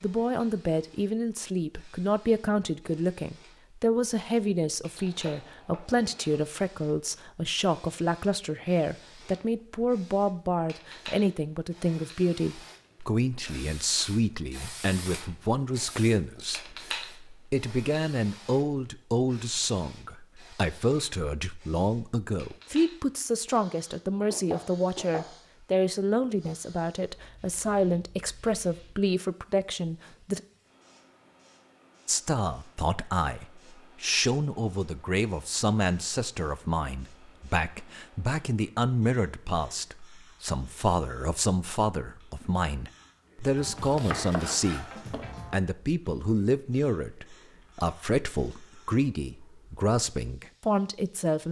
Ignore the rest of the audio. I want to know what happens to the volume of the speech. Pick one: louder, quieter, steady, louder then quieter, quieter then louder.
steady.